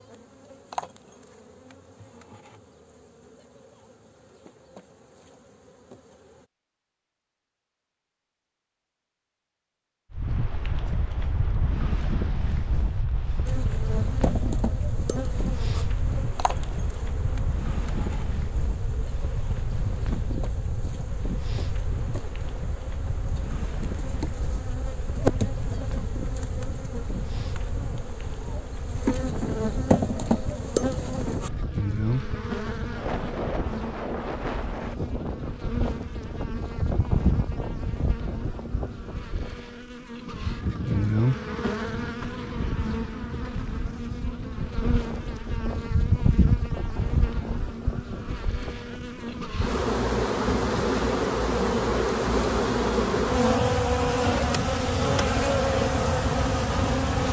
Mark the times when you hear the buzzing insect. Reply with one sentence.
The buzzing insect can be heard from 0.0 to 6.5 s and from 13.4 to 57.2 s.